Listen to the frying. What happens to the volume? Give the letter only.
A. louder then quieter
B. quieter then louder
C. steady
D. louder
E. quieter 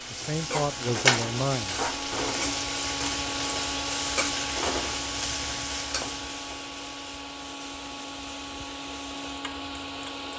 E.